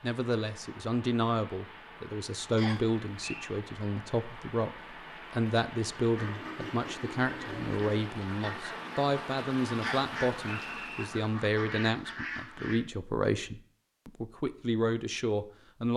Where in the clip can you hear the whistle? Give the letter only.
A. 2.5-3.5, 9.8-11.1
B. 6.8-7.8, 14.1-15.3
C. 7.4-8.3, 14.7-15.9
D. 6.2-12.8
A.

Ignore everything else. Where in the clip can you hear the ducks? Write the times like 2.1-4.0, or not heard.
6.2-12.8.